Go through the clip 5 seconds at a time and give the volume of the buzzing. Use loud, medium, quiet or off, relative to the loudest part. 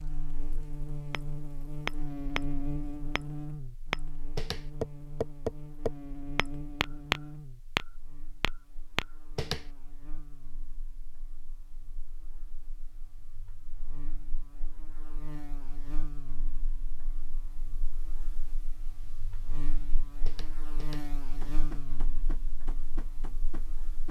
loud, medium, quiet, medium, medium.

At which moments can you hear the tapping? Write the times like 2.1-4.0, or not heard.
1.1-9.7, 20.2-24.0.